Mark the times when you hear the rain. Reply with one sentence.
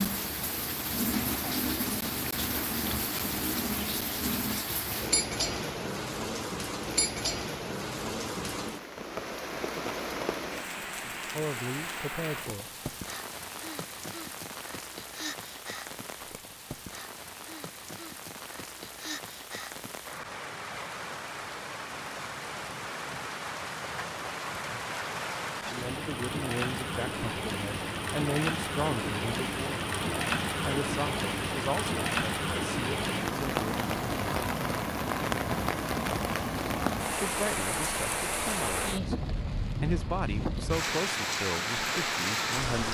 You can hear the rain from 0.0 to 42.8 s.